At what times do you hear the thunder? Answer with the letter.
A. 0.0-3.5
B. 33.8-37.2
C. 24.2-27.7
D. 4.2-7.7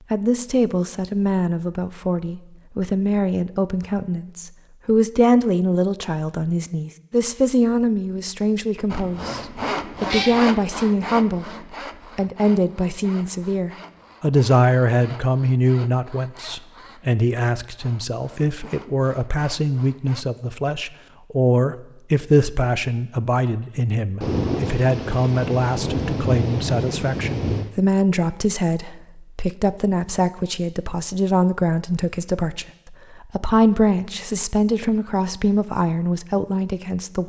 C.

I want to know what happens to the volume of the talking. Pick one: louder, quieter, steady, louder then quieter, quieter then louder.
steady.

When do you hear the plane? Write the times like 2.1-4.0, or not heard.
not heard.